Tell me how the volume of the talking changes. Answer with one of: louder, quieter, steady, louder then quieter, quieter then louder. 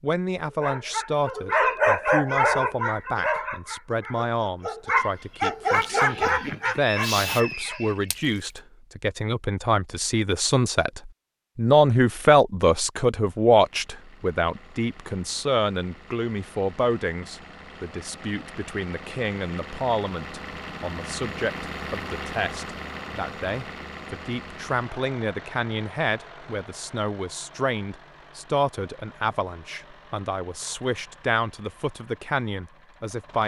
louder then quieter.